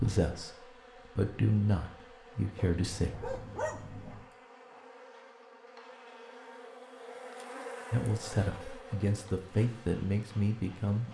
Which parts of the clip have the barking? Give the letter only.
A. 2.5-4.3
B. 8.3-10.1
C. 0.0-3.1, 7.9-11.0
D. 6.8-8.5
A.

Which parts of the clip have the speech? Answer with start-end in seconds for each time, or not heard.
0.0-3.1, 7.9-11.0.